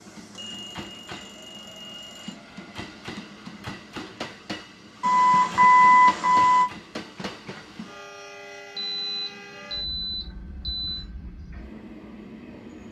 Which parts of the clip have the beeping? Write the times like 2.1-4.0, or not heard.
0.3-2.4, 5.0-6.7, 8.8-11.1.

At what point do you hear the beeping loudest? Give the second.
6 s.